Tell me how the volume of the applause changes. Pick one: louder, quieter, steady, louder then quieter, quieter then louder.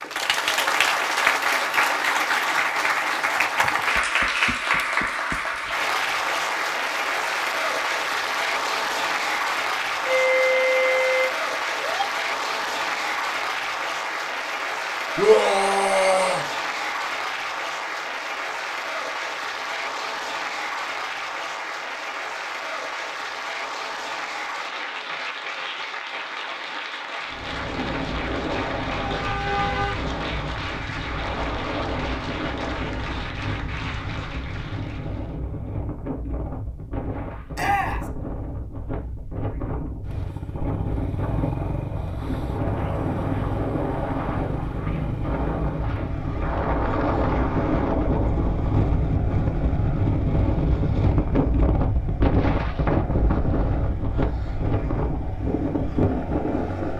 quieter.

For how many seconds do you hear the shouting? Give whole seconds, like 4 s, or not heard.
2 s.